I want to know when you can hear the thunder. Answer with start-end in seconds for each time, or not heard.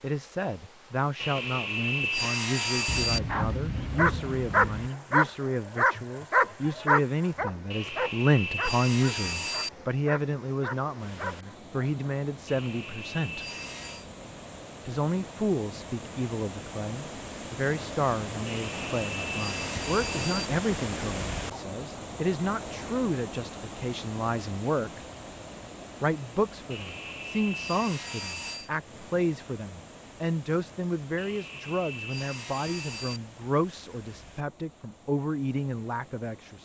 2.9-4.9.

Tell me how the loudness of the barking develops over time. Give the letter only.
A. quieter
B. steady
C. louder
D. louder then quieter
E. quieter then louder
A.